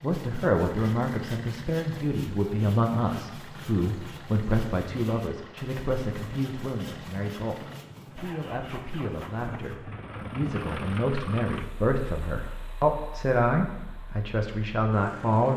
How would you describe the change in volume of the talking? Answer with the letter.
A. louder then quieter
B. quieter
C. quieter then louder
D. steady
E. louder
C.